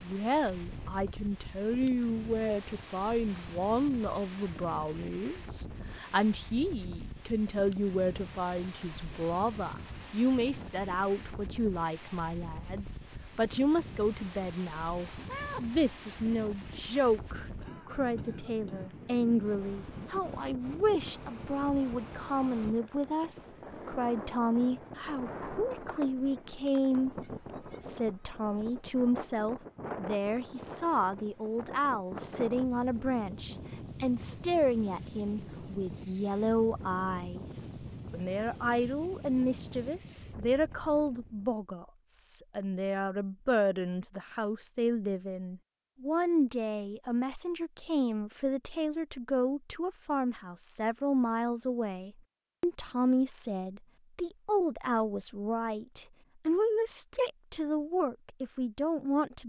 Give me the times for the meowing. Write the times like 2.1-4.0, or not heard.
15.2-16.2.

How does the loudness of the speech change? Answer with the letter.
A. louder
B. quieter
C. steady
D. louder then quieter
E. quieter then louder
C.